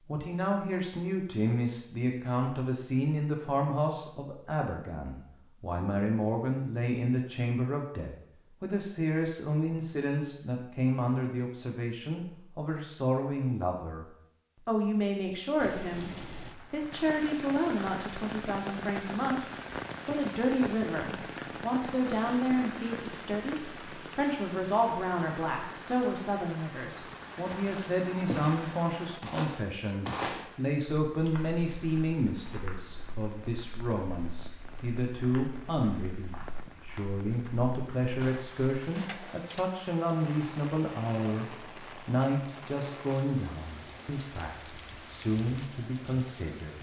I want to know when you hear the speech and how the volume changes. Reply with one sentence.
You can hear the speech from 0.1 to 14.1 s, at a steady volume; and from 14.7 to 46.7 s, at a steady volume.